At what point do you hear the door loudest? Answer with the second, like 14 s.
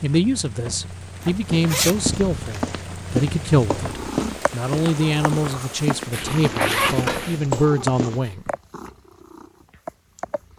7 s.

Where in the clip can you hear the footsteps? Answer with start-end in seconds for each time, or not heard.
1.5-8.2.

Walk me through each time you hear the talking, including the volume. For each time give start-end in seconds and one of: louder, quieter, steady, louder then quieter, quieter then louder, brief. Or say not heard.
0.0-8.5 steady.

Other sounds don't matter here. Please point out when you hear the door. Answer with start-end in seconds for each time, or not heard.
0.7-1.4, 7.0-7.6.